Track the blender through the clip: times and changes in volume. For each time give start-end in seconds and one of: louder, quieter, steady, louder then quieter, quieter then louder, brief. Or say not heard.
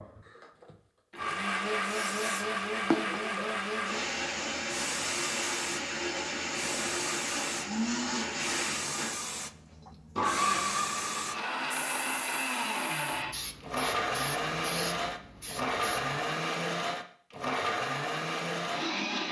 0.0-19.2 steady.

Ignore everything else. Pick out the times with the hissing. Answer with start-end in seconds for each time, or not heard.
1.8-16.1.